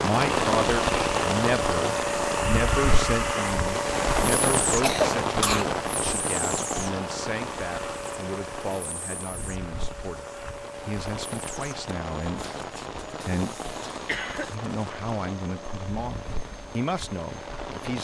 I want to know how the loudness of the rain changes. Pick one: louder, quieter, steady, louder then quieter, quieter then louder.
quieter.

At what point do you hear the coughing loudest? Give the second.
5 s.